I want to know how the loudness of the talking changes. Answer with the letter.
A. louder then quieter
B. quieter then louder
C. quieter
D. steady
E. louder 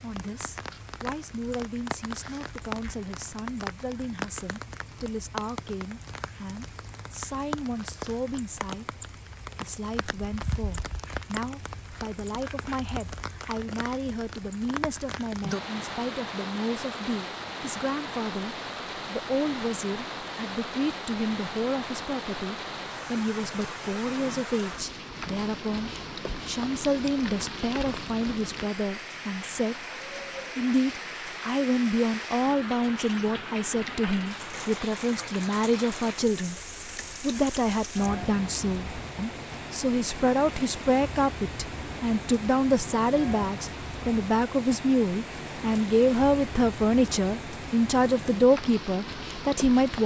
E.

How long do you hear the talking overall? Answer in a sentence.
You can hear the talking for 48 seconds altogether.